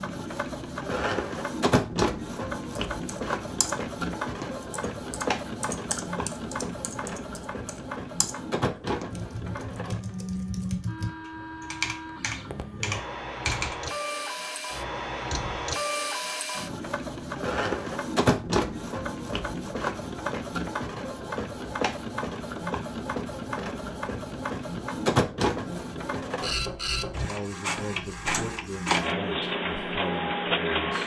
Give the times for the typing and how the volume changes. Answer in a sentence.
You can hear the typing from 2.8 to 13.8 s, getting louder.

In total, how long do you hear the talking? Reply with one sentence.
You can hear the talking for 4 seconds altogether.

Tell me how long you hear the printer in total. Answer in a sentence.
The printer can be heard for 31 seconds in total.